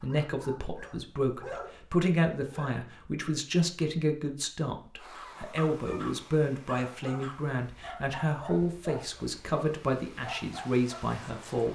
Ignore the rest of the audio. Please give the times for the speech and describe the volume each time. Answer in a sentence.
The speech can be heard from 0.0 to 11.7 s, at a steady volume.